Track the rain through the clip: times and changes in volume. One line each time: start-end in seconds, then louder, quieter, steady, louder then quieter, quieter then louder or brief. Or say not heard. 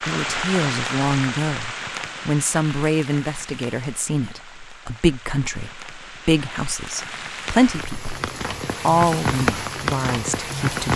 0.0-10.9 quieter then louder.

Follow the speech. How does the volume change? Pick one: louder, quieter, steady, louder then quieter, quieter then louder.
steady.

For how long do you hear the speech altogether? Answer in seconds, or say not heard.
11 s.